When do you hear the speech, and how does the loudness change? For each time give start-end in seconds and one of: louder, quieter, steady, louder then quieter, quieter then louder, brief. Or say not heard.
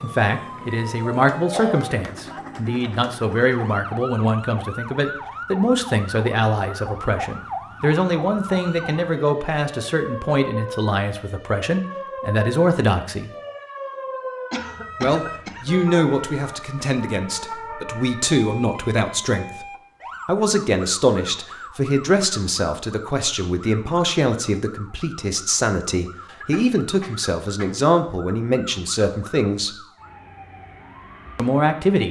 0.0-13.3 steady
15.0-29.8 steady
31.4-32.0 brief.